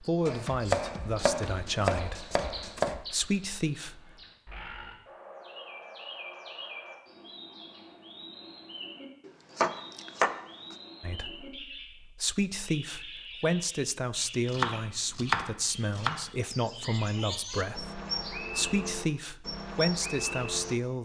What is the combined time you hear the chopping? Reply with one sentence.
The chopping can be heard for 6 seconds in total.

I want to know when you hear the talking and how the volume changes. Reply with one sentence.
You can hear the talking from 0.0 to 4.1 s, getting quieter then louder; and from 11.0 to 21.0 s, at a steady volume.